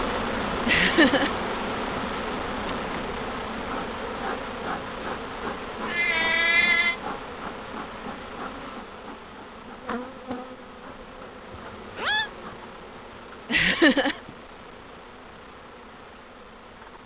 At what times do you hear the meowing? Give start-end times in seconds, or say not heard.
5.0-7.0, 11.5-12.3.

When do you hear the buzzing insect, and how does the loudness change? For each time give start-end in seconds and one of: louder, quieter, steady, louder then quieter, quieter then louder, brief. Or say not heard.
0.0-17.0 quieter.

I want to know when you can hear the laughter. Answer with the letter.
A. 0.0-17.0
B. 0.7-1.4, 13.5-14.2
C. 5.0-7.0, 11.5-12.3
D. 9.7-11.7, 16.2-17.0
B.